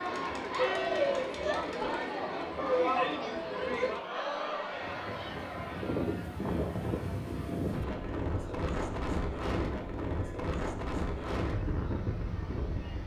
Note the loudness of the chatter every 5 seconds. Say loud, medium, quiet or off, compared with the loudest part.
loud, quiet, quiet.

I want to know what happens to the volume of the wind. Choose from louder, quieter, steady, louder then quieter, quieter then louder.
steady.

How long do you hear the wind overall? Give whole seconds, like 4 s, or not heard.
8 s.